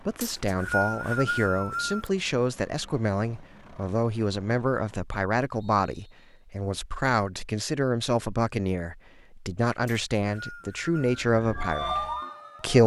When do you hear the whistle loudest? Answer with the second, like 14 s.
1 s.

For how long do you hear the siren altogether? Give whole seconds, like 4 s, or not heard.
2 s.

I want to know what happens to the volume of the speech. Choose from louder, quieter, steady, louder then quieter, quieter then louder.
steady.